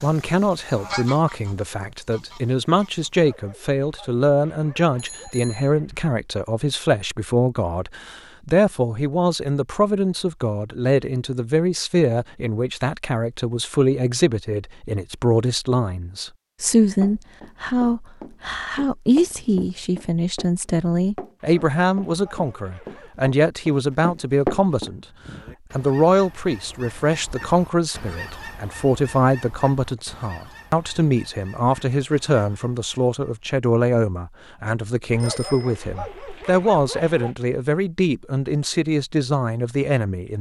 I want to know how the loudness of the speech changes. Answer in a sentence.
The loudness of the speech stays about the same.